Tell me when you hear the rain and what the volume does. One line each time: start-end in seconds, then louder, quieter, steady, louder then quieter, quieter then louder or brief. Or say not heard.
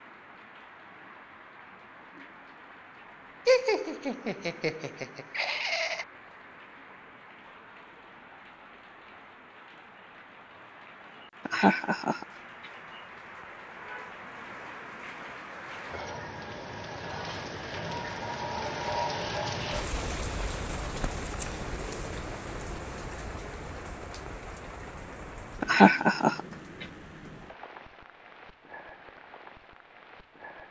0.0-30.6 louder then quieter.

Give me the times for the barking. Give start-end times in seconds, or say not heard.
not heard.